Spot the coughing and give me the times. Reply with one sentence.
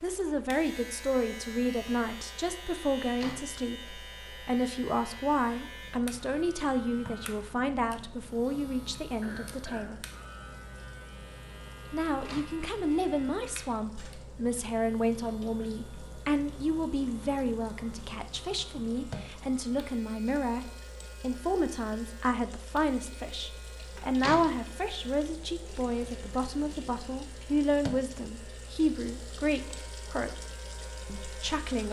You can hear the coughing from 9.2 to 10.1 s.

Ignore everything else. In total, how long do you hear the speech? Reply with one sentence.
You can hear the speech for 29 seconds altogether.